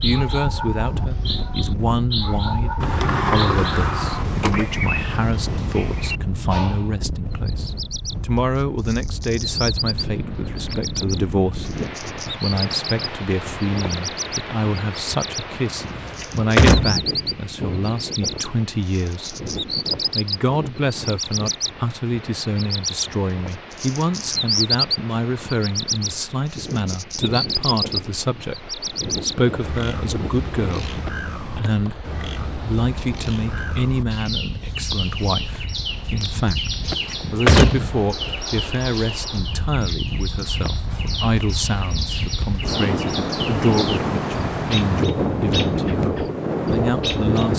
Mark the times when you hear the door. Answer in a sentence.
You can hear the door from 2.8 to 4.7 s, from 15.9 to 17.1 s and from 36.8 to 38.0 s.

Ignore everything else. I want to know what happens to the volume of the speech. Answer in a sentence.
The volume of the speech stays about the same.